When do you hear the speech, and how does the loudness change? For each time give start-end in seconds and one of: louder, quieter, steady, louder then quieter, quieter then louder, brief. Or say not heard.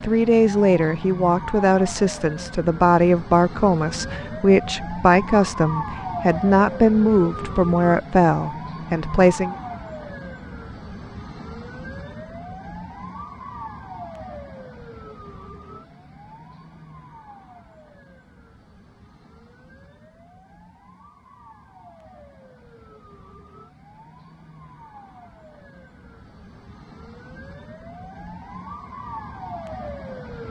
0.0-9.6 steady.